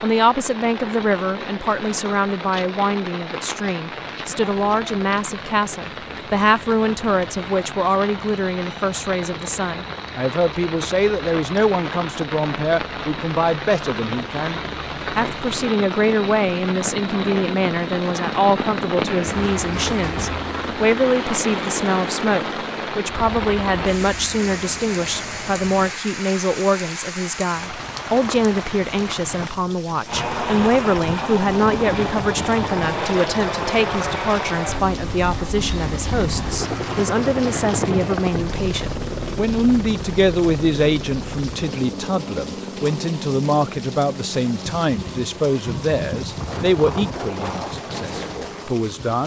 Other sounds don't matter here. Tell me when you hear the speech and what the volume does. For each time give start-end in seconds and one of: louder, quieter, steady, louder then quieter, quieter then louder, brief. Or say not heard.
0.0-49.2 steady.